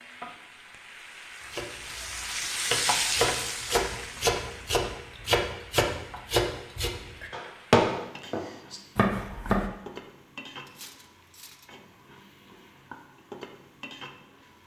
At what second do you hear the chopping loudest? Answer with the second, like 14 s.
8 s.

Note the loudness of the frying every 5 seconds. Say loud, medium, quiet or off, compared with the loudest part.
loud, quiet, quiet.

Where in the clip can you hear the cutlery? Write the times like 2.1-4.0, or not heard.
10.7-11.7.